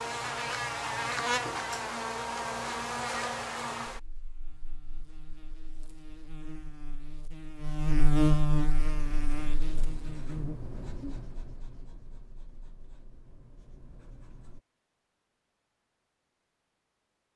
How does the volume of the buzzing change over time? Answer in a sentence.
The volume of the buzzing goes down, then up.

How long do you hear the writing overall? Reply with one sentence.
The writing can be heard for 6 seconds in total.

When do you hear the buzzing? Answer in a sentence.
The buzzing can be heard from 0.0 to 10.6 s.